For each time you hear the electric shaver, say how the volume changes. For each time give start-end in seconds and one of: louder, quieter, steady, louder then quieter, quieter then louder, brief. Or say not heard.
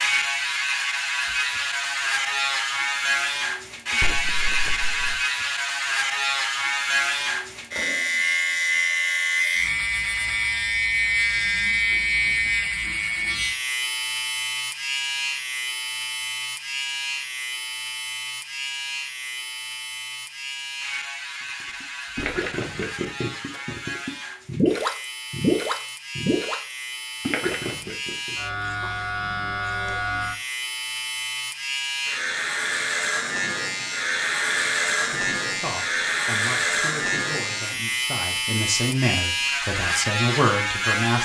0.0-41.2 quieter then louder.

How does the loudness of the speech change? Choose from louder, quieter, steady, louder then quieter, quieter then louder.
louder.